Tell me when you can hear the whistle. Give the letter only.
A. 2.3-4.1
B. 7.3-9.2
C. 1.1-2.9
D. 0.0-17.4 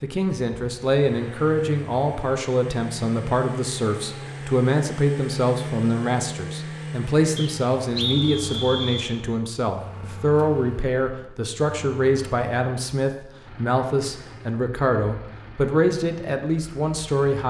B.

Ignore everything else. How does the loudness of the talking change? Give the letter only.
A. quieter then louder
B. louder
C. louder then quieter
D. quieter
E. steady
E.